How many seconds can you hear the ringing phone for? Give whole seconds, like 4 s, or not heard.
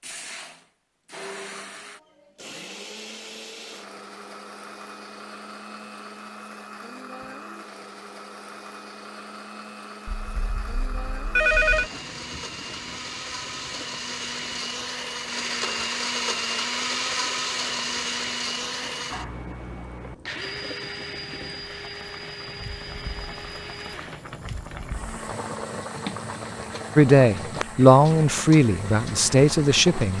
2 s.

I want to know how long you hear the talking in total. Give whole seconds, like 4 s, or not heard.
3 s.